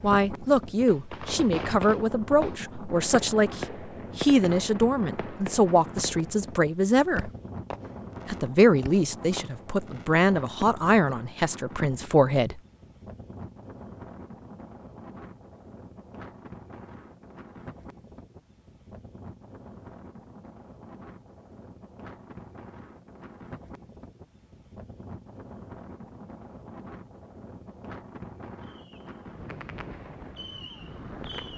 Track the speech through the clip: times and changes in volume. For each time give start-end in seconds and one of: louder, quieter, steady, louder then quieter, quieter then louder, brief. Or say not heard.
0.0-7.3 steady
8.2-12.6 quieter then louder.